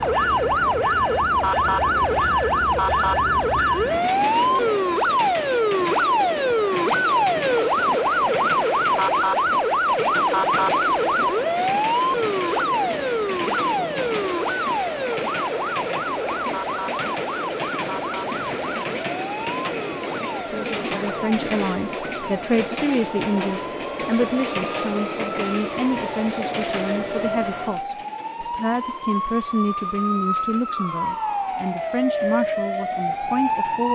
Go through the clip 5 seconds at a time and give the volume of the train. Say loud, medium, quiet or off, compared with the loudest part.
loud, loud, loud, loud, loud, loud, quiet.